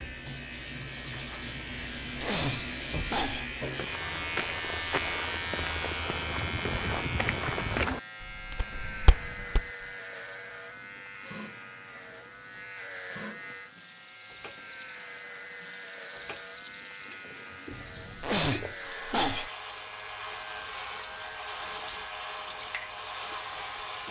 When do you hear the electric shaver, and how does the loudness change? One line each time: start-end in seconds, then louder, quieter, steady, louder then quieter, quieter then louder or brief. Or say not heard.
0.0-24.0 quieter.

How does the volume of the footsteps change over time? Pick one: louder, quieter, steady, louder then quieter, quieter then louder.
louder then quieter.